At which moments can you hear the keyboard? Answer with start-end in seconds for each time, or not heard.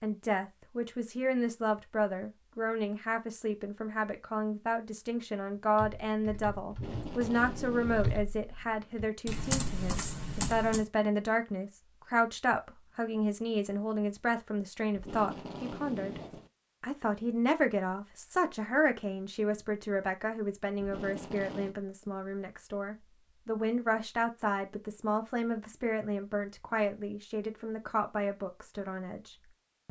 5.8-10.8.